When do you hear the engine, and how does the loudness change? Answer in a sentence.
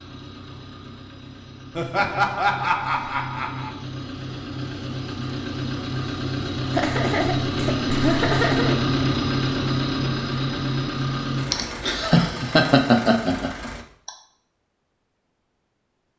The engine can be heard from 0.0 to 13.8 s, getting louder then quieter.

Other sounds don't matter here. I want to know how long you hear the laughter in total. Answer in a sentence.
The laughter can be heard for 7 seconds in total.